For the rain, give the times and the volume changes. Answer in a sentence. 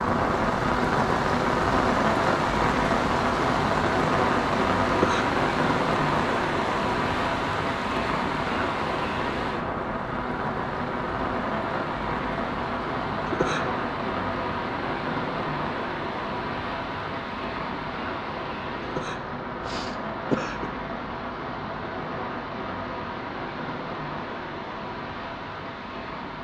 You can hear the rain from 0.0 to 26.3 s, getting quieter.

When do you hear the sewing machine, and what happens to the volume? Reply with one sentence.
The sewing machine can't be heard in this clip.